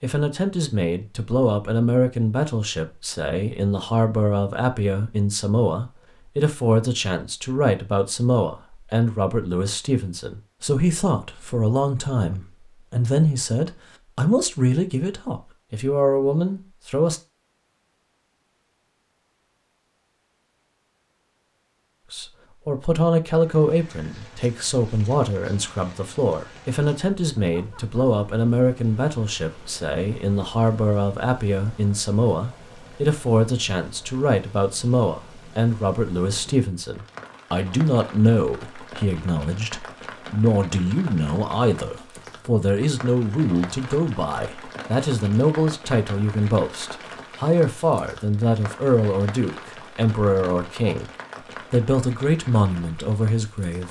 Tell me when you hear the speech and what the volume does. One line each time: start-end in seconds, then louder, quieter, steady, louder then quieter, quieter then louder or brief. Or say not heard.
0.0-17.2 steady
22.1-51.1 steady
51.7-53.8 brief.